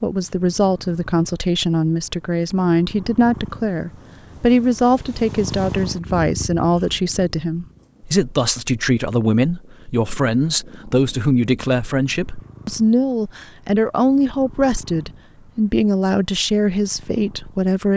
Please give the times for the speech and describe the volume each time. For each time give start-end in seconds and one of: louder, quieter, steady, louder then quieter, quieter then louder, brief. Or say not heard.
0.0-17.9 steady.